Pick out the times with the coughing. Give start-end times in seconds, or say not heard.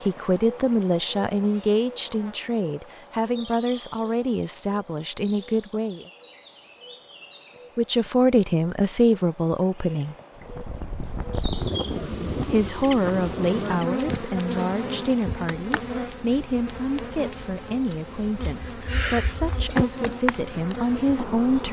18.4-19.8.